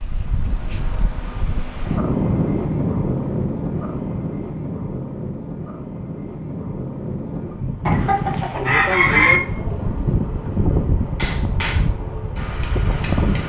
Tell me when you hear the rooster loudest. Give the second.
9 s.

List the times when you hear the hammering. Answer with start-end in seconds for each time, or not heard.
11.2-13.4.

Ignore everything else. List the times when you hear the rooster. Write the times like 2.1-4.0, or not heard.
7.8-9.4.